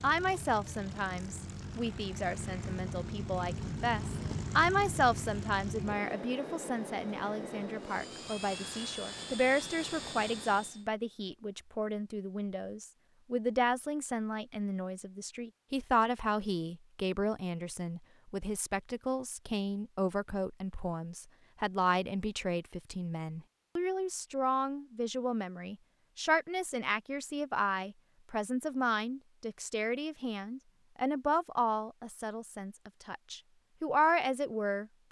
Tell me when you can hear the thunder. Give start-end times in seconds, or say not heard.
not heard.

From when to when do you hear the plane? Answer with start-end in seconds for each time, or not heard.
0.0-10.8.